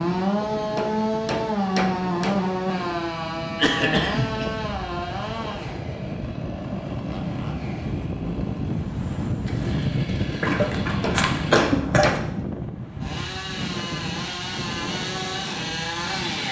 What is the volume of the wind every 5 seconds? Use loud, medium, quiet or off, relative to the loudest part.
medium, loud, loud, medium.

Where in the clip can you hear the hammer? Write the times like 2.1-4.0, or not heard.
0.6-2.5, 10.8-12.2.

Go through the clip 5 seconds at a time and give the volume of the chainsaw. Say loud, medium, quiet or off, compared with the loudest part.
loud, medium, medium, loud.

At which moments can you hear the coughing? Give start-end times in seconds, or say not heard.
3.5-4.5, 10.4-12.2.